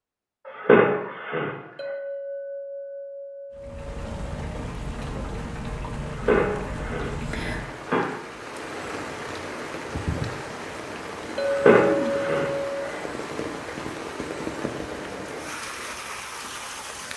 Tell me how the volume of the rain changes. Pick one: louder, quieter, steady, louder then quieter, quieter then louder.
steady.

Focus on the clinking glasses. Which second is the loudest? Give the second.
12 s.